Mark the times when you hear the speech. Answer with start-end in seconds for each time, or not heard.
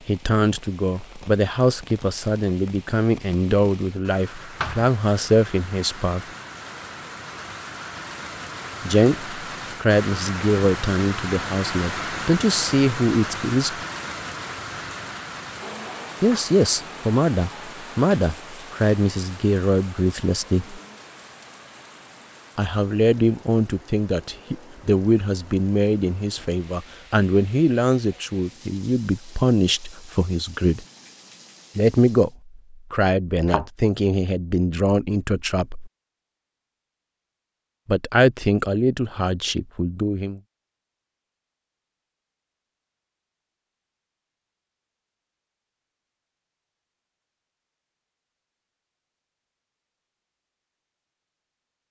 0.1-6.2, 8.8-13.8, 16.2-20.8, 22.6-30.9, 31.8-35.9, 37.9-40.4.